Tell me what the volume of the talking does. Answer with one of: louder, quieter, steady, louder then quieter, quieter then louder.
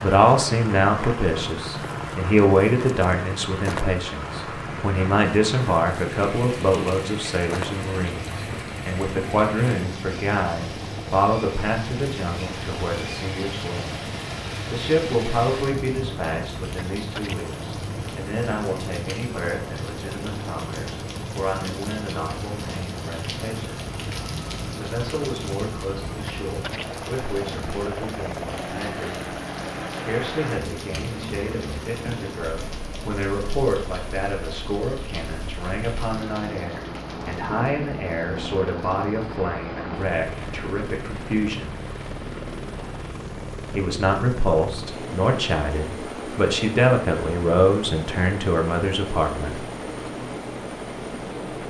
quieter then louder.